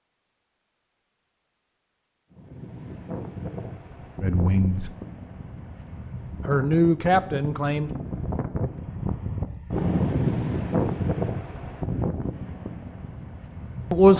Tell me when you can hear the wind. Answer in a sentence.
The wind can be heard from 2.3 to 14.1 s.